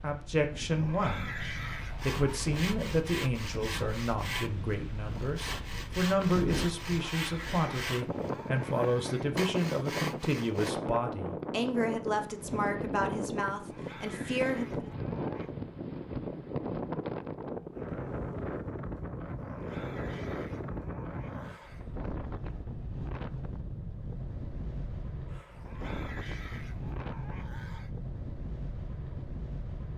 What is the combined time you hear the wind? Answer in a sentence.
The wind can be heard for 30 seconds in total.